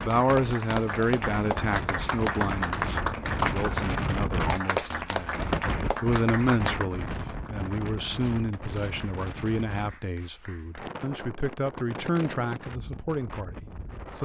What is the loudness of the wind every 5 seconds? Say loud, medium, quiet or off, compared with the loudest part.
loud, loud, medium.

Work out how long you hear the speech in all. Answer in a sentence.
The speech can be heard for 14 seconds in total.